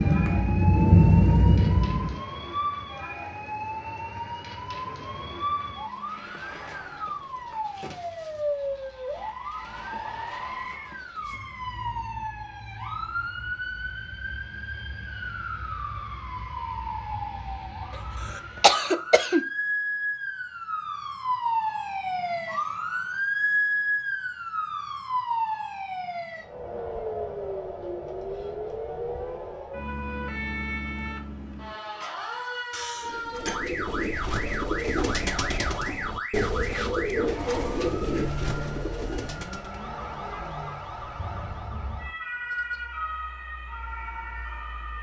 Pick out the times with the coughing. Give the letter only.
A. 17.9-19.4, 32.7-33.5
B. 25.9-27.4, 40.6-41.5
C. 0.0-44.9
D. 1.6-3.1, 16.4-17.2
A.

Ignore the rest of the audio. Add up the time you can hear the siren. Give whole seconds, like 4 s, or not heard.
45 s.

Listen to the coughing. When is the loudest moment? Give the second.
19 s.